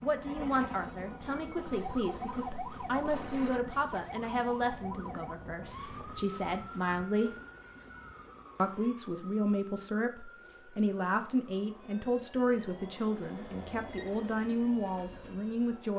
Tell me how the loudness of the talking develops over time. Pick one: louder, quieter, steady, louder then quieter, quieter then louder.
steady.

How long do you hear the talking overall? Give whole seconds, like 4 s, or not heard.
15 s.